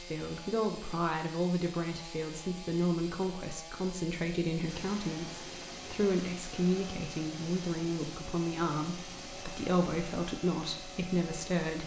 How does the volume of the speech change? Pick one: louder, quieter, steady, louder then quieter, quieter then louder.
steady.